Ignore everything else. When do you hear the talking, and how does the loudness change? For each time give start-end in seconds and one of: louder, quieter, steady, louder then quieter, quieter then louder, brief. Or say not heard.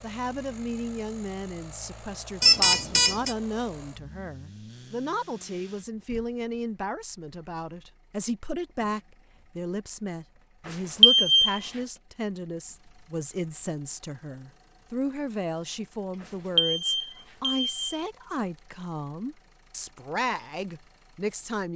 0.0-21.7 steady.